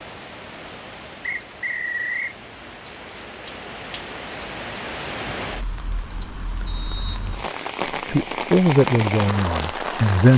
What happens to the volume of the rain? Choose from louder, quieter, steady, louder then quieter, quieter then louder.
louder.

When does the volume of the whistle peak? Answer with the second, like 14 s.
2 s.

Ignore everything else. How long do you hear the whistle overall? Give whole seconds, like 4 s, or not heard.
2 s.